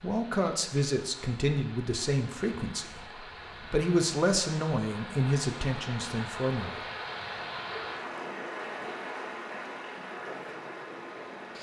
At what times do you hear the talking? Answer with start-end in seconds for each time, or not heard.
0.0-6.8.